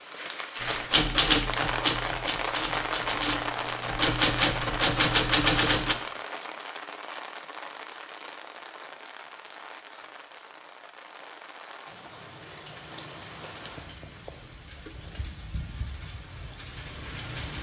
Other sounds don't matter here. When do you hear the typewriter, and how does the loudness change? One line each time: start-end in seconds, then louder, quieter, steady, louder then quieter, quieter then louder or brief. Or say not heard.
0.6-6.0 quieter then louder.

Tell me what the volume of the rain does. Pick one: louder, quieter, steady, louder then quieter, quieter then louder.
quieter.